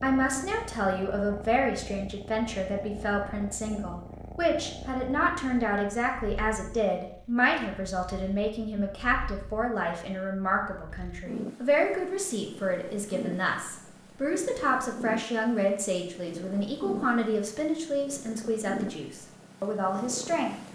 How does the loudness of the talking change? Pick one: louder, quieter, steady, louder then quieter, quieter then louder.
steady.